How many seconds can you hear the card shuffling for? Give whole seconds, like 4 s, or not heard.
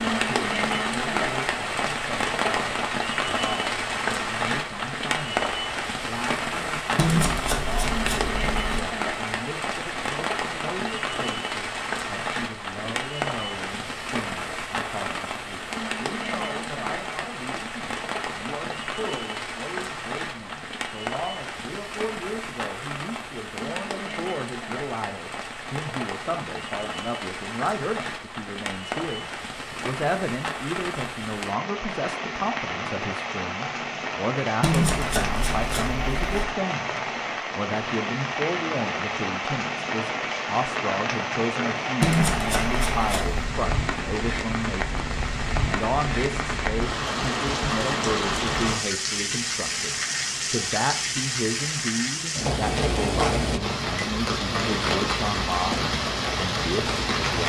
5 s.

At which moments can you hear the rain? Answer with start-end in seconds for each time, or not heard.
0.0-57.4.